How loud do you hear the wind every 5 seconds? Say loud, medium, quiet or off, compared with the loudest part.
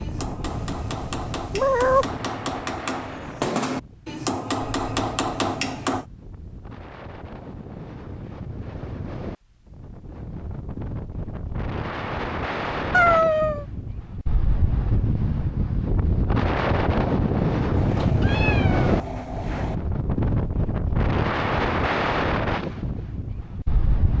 quiet, quiet, medium, loud, loud.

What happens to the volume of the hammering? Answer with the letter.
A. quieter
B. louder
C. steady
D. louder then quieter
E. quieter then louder
B.